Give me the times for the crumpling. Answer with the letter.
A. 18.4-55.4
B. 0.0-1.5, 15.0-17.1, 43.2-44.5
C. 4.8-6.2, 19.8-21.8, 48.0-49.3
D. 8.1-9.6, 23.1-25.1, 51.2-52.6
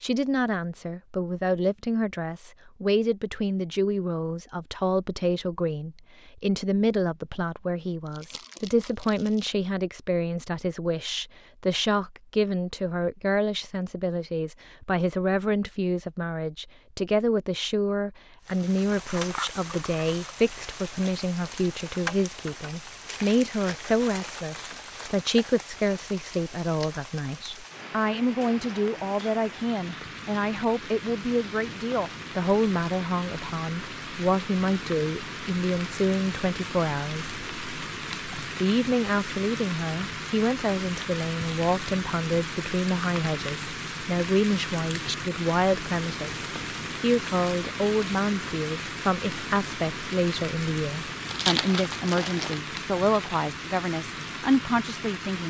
D.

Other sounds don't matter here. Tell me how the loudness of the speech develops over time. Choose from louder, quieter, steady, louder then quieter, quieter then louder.
steady.